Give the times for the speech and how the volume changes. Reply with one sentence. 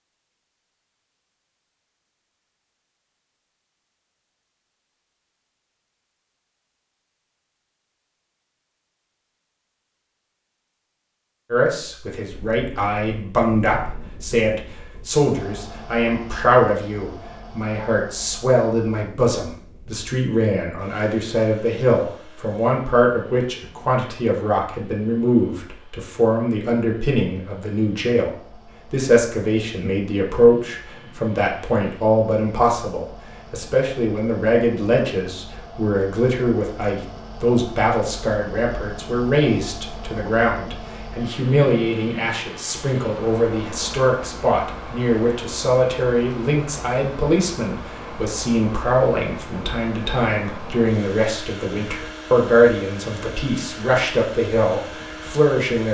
The speech can be heard from 11.5 to 55.8 s, at a steady volume.